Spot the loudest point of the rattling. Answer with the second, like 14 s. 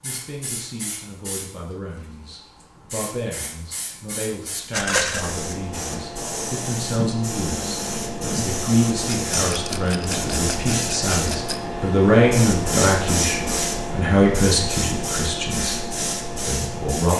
5 s.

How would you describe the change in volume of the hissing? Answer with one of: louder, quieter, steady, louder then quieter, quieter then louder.
louder.